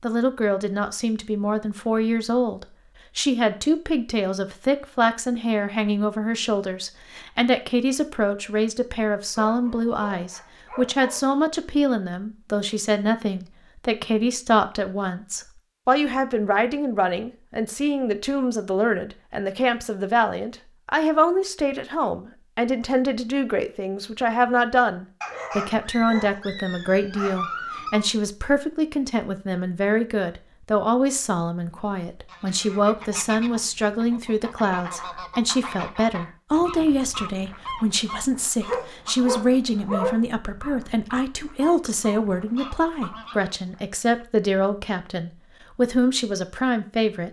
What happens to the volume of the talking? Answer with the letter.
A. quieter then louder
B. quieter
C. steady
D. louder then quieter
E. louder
C.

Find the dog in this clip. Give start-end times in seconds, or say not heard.
9.4-11.2, 25.2-28.1, 38.6-40.2.